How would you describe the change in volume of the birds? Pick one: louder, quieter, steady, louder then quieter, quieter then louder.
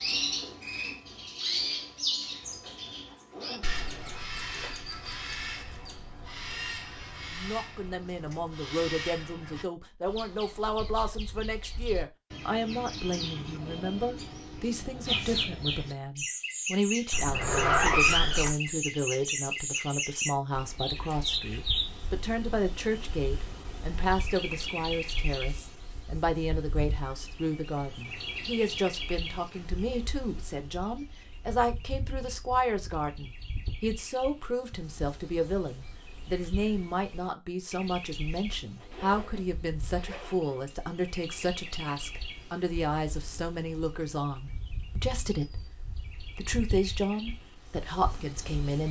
quieter.